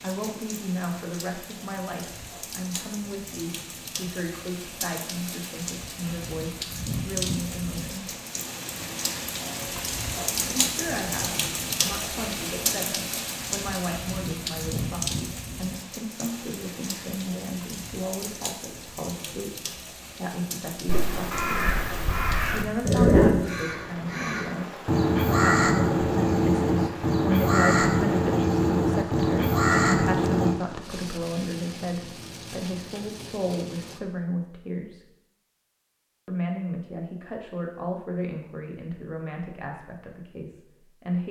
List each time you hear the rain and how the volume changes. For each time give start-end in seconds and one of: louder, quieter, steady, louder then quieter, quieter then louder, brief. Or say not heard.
0.0-34.0 louder then quieter.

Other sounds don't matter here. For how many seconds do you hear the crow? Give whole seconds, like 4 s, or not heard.
10 s.